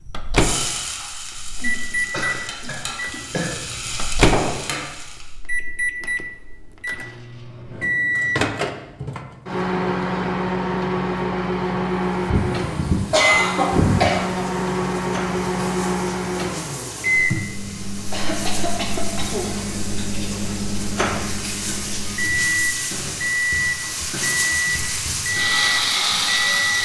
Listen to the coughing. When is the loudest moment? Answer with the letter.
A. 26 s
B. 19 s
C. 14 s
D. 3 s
C.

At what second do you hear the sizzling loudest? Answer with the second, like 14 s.
26 s.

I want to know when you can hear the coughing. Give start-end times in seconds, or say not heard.
1.6-3.5, 12.2-14.4, 18.1-19.6.